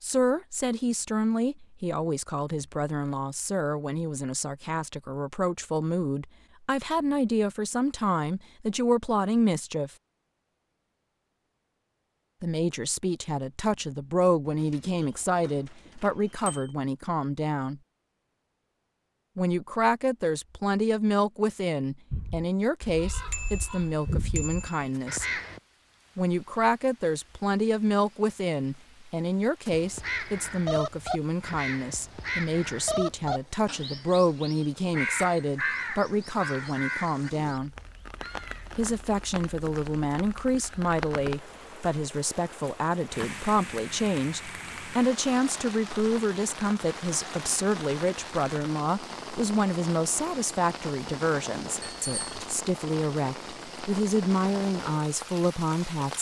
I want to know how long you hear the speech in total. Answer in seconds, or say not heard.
50 s.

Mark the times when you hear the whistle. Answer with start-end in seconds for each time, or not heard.
not heard.